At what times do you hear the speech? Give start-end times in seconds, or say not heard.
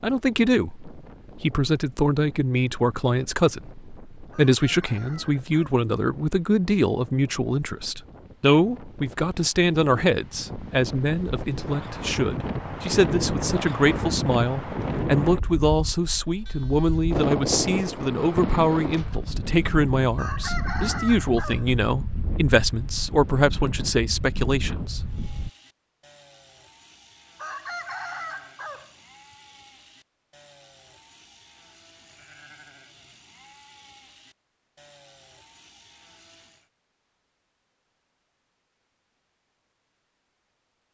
0.0-25.0.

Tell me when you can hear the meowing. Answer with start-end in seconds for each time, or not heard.
not heard.